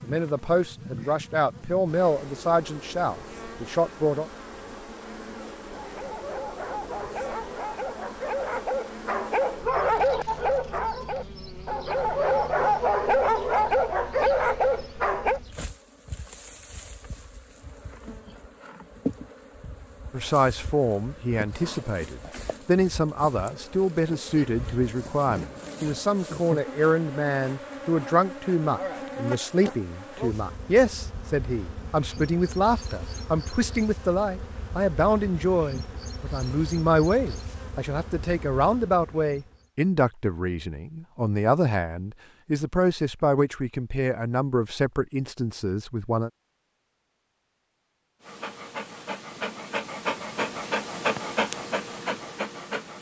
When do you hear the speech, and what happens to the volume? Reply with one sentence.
The speech can be heard from 0.0 to 4.2 s, at a steady volume; and from 20.1 to 46.3 s, at a steady volume.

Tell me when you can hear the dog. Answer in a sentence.
You can hear the dog from 5.3 to 15.4 s and from 48.2 to 52.9 s.